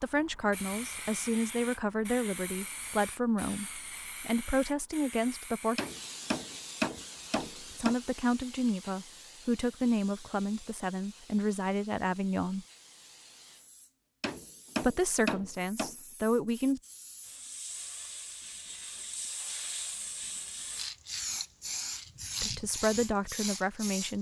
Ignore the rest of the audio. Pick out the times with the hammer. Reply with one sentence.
You can hear the hammer from 5.8 to 8.0 s and from 14.2 to 15.9 s.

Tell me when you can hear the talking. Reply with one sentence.
You can hear the talking from 0.0 to 5.8 s, from 7.6 to 12.7 s, from 14.8 to 16.8 s and from 22.4 to 24.1 s.